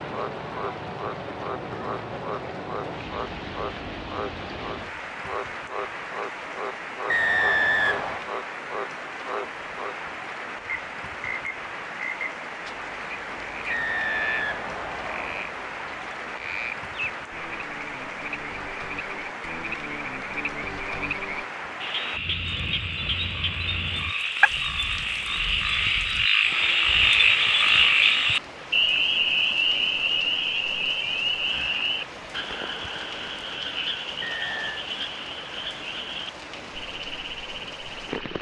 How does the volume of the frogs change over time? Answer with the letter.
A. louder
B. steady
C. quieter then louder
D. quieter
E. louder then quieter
E.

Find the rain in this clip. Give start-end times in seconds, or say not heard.
0.0-38.3.